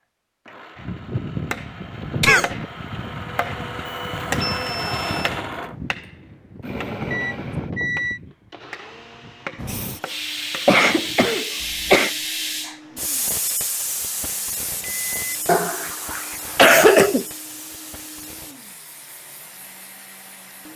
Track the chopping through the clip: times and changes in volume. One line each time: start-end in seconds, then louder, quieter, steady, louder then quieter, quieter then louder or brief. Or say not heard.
0.8-12.0 quieter.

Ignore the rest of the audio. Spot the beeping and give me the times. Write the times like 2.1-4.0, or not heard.
3.9-5.3, 7.1-8.2, 14.8-15.4.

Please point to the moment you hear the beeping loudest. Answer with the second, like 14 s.
8 s.